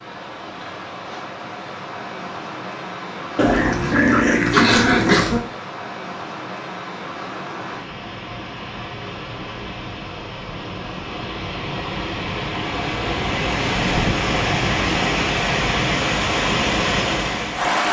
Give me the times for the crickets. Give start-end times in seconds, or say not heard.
not heard.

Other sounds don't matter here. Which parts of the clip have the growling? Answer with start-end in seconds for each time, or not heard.
3.4-5.4.